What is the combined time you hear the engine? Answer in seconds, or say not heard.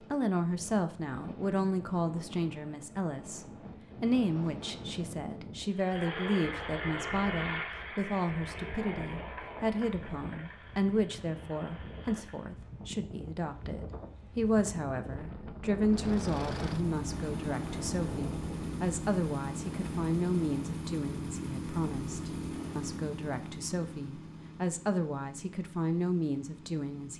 18 s.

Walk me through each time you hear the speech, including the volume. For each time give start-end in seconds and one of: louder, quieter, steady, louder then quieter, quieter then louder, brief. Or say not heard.
0.0-27.1 steady.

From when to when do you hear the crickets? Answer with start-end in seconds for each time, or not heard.
not heard.